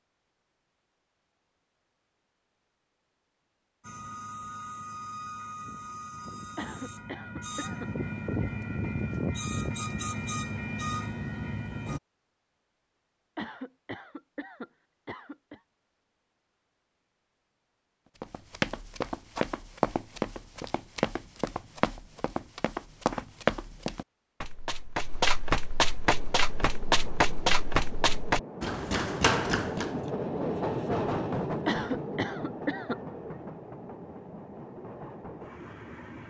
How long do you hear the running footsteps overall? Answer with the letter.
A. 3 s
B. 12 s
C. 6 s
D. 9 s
B.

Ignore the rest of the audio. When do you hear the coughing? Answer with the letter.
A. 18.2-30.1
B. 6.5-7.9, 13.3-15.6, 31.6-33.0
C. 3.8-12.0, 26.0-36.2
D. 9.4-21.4
B.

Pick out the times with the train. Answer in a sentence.
The train can be heard from 3.8 to 12.0 s and from 26.0 to 36.2 s.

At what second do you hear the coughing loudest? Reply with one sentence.
The volume of the coughing peaks at 32 seconds.